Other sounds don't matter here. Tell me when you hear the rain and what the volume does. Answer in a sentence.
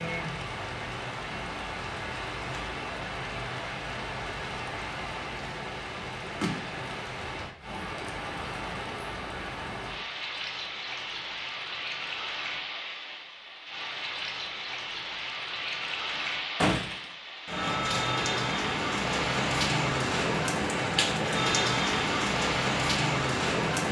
You can hear the rain from 0.0 to 23.8 s, getting louder.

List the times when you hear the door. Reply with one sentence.
The door can be heard from 16.1 to 17.1 s.